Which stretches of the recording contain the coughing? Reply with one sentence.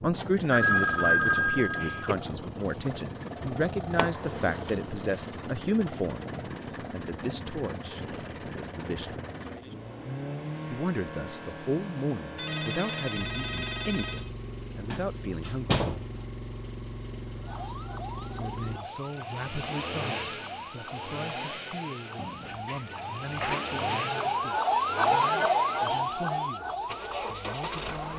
The coughing can't be heard in this clip.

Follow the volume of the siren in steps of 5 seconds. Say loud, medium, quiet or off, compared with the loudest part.
off, off, off, quiet, medium, loud.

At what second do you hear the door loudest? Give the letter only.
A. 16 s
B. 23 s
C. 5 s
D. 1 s
A.